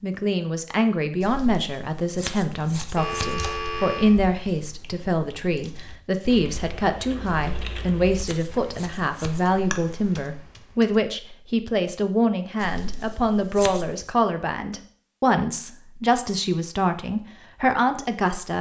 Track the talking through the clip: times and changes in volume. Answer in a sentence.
The talking can be heard from 0.0 to 18.5 s, at a steady volume.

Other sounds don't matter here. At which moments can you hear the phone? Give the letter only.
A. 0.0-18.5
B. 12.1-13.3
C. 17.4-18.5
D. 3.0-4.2
D.